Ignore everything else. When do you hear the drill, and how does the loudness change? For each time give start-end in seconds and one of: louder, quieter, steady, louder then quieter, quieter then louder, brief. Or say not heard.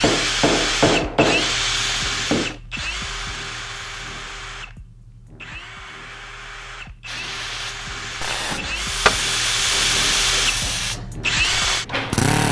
0.0-12.4 quieter then louder.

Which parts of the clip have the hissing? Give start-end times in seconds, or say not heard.
7.0-12.4.